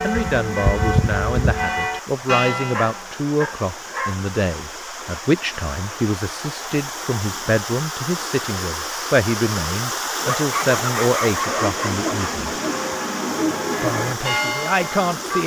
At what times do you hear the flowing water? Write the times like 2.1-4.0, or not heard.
0.0-15.4.